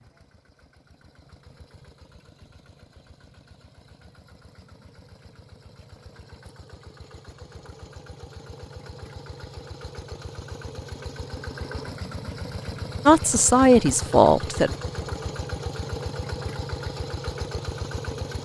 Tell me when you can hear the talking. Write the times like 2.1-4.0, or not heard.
13.1-14.7.